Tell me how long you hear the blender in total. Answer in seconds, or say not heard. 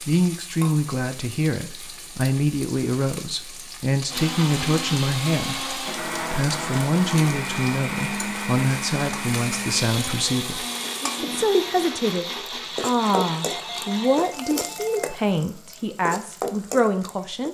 10 s.